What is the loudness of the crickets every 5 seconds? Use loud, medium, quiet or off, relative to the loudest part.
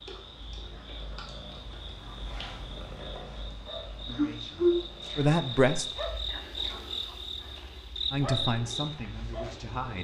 medium, loud.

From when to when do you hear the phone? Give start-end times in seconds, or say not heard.
not heard.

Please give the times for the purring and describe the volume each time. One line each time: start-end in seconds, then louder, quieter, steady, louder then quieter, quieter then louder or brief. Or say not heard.
0.0-9.9 louder then quieter.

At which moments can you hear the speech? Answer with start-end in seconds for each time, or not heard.
4.0-5.8, 8.1-9.9.